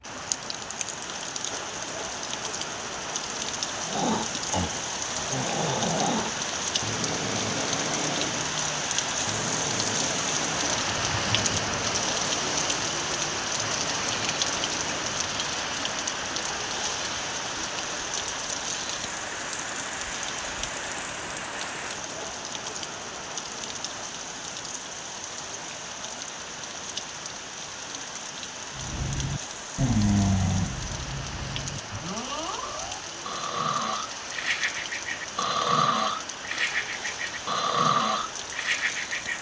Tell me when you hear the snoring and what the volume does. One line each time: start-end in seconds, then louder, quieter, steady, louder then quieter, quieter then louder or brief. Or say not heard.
3.8-15.3 quieter
28.8-39.3 quieter then louder.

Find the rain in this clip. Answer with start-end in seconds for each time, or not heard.
0.0-39.3.